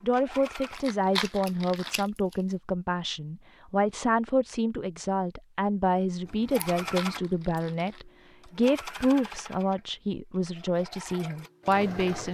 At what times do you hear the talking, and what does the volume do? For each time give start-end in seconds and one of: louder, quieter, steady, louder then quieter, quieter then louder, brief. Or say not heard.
0.0-12.2 steady.